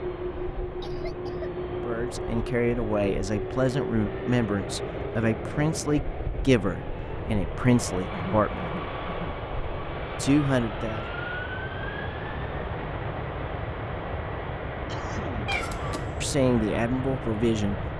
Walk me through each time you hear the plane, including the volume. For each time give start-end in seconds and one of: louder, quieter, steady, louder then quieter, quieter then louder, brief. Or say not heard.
0.0-17.9 steady.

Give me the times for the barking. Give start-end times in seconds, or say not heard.
not heard.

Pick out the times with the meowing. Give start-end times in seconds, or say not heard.
15.4-16.4.